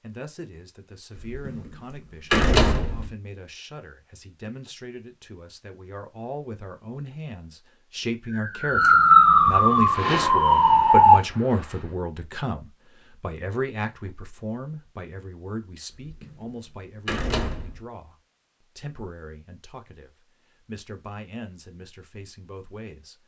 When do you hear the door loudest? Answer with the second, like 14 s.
2 s.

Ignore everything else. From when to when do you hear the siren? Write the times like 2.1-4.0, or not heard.
8.2-11.2.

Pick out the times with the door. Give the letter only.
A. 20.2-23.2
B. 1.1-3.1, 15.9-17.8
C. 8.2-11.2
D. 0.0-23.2
B.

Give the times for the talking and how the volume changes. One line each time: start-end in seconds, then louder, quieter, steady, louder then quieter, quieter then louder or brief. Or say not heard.
0.0-23.2 louder then quieter.